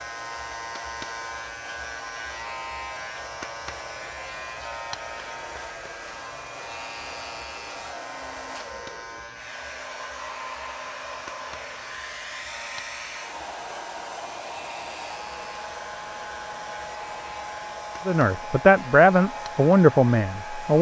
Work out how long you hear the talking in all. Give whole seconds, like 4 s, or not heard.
3 s.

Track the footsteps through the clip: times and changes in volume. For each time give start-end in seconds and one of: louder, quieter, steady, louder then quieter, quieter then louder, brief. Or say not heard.
not heard.